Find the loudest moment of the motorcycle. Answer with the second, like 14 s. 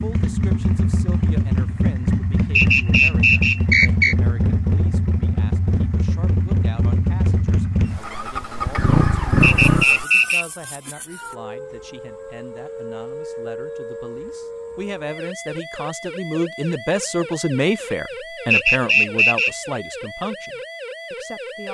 9 s.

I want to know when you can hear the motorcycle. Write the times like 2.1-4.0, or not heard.
0.0-10.1.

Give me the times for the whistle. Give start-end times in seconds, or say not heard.
2.5-4.2, 9.4-10.4, 18.5-19.5.